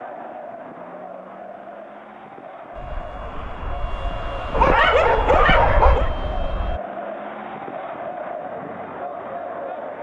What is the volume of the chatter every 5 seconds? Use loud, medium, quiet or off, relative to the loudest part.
medium, loud.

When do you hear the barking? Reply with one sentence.
You can hear the barking from 4.5 to 6.1 s.